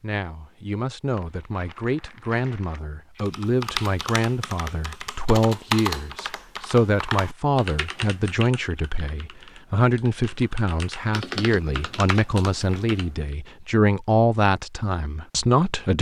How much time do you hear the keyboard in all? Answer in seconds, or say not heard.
10 s.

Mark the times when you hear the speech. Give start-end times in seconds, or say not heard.
0.0-15.9.